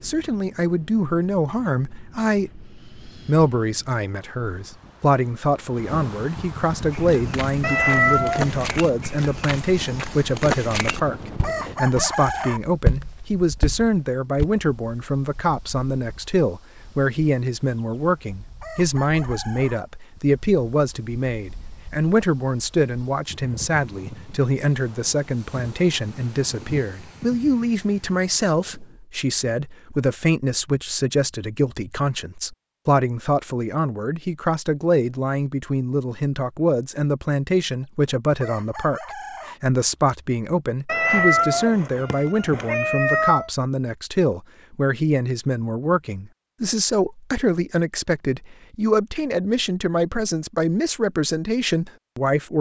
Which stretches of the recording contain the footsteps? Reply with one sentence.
The footsteps can be heard from 6.9 to 14.4 s.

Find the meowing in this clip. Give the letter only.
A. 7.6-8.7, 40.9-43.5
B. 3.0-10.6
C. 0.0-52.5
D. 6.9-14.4
A.